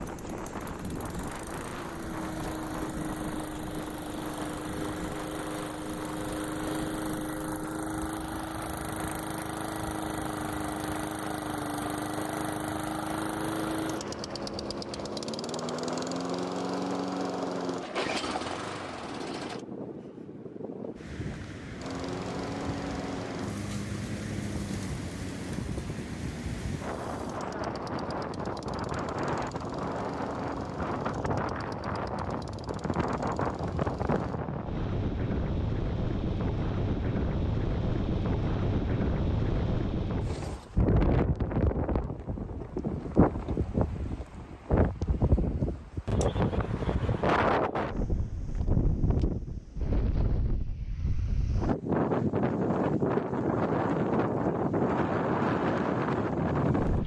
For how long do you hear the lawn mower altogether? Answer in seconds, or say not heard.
32 s.